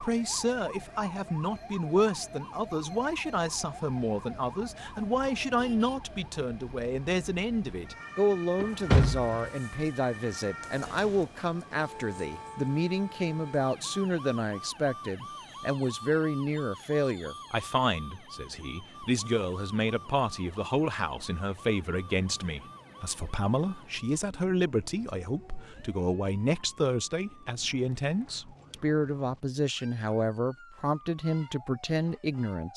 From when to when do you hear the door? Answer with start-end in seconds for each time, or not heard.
8.6-9.5.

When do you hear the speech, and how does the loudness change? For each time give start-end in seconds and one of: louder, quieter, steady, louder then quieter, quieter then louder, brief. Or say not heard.
0.0-32.7 steady.